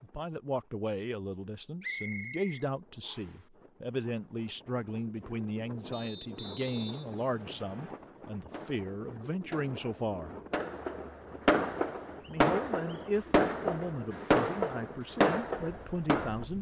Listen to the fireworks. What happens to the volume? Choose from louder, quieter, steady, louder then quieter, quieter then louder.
louder.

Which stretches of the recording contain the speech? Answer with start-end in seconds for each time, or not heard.
0.0-10.4, 12.2-16.5.